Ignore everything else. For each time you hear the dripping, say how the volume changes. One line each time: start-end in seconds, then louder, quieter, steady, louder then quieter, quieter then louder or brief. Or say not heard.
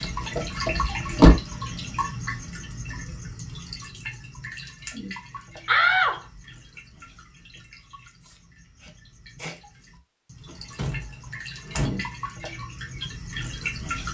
0.0-14.0 quieter then louder.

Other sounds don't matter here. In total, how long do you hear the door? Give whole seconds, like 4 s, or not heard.
4 s.